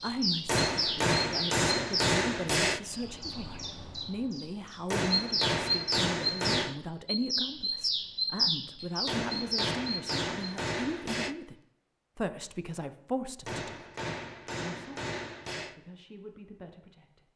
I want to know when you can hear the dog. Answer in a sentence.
You can't hear the dog here.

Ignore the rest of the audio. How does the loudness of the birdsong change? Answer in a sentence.
The volume of the birdsong goes down, then up.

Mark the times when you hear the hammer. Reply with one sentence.
You can hear the hammer from 0.5 to 2.8 s, from 4.8 to 6.8 s, from 9.1 to 11.3 s and from 13.4 to 15.8 s.